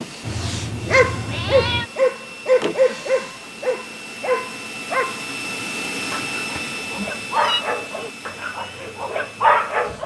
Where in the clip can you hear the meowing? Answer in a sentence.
The meowing can be heard from 0.2 to 1.9 s and from 6.5 to 7.7 s.